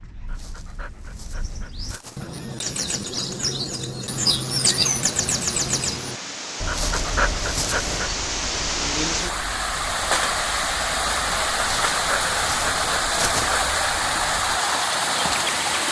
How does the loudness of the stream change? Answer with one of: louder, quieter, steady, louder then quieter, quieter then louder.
louder.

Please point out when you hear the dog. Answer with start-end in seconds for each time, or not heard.
0.2-2.3, 6.7-8.1, 11.6-13.6.